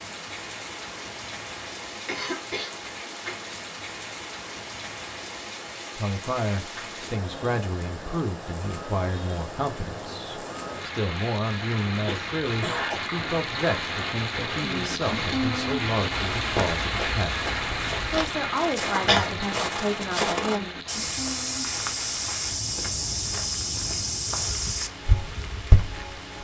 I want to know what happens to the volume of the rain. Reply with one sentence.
The loudness of the rain goes up, then down.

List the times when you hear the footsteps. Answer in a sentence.
You can hear the footsteps from 16.1 to 26.1 s.